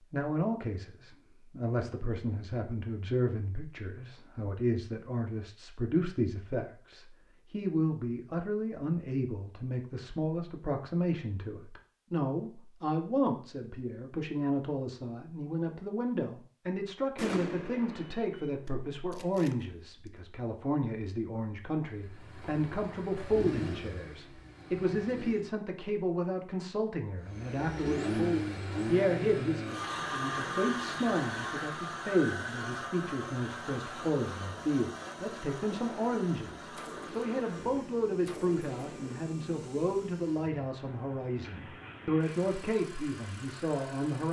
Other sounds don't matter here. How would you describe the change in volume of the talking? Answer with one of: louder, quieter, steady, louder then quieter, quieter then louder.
steady.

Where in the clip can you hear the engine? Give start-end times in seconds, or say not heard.
21.9-25.4, 27.2-44.2.